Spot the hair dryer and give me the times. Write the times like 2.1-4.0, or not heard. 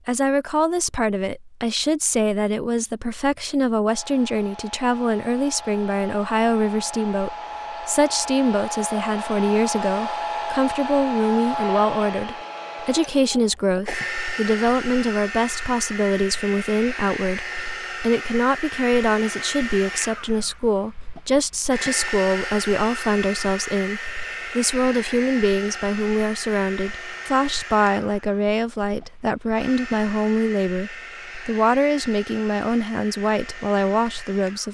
3.9-34.6.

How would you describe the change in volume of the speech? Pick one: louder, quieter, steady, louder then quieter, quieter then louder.
steady.